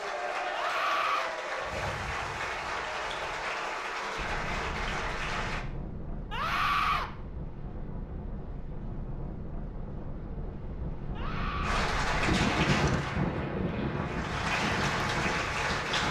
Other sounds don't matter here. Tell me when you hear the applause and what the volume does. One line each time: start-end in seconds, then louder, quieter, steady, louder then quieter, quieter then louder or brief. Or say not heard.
0.0-5.7 steady
11.6-16.0 quieter then louder.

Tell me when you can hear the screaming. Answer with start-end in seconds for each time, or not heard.
0.5-1.3, 6.3-7.0, 11.2-11.8.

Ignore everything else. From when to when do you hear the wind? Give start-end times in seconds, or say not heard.
4.2-16.0.